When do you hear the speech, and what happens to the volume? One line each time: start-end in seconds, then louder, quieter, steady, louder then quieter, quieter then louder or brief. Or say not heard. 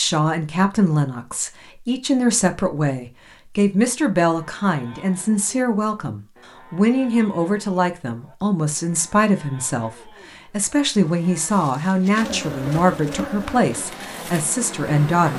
0.0-15.3 steady.